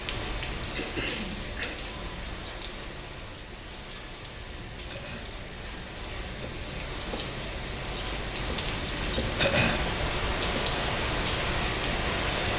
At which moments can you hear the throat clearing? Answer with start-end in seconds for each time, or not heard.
0.7-1.8, 4.8-5.3, 9.3-9.8.